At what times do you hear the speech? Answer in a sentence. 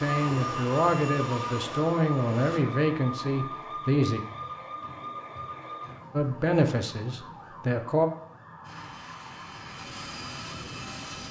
The speech can be heard from 0.0 to 4.2 s and from 6.1 to 8.1 s.